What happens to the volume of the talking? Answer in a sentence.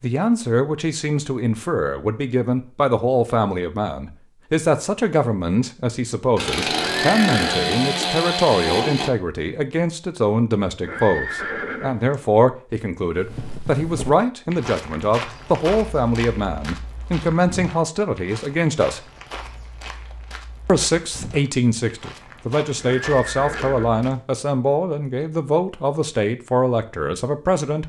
The loudness of the talking stays about the same.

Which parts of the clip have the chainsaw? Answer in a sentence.
You can hear the chainsaw from 6.3 to 9.1 s.